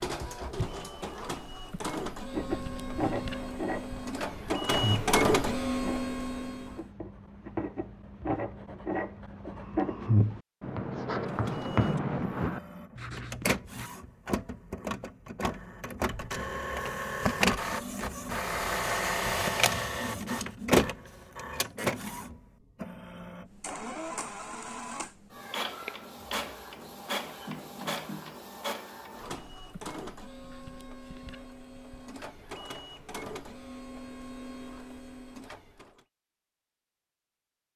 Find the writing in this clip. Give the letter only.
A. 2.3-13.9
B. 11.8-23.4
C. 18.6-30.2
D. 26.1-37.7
A.